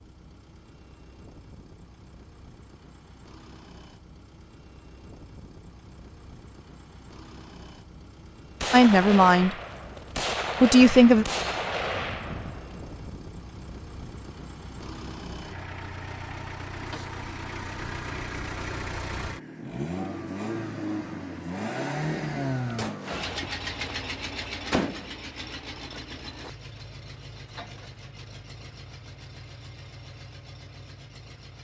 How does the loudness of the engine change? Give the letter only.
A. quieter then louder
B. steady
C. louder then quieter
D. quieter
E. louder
C.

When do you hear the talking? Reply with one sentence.
You can hear the talking from 8.7 to 9.6 s and from 10.6 to 11.2 s.